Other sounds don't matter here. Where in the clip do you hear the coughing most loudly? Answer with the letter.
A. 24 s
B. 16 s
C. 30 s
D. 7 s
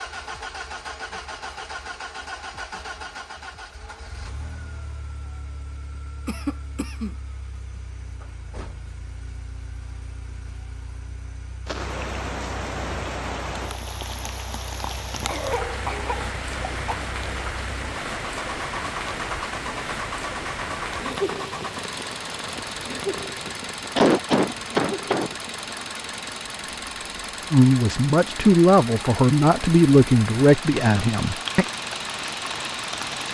A.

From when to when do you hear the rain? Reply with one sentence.
You can hear the rain from 11.7 to 33.2 s.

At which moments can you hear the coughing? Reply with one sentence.
The coughing can be heard from 6.2 to 7.2 s, from 15.2 to 16.9 s and from 23.9 to 25.3 s.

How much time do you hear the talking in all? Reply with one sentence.
You can hear the talking for 4 seconds altogether.